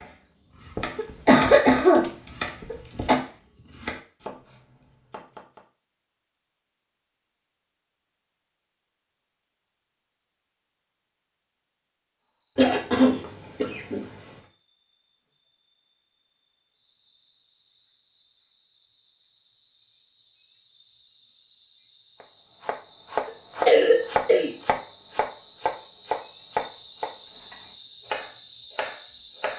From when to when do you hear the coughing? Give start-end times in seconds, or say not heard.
0.8-3.1, 12.6-14.2, 23.6-24.5.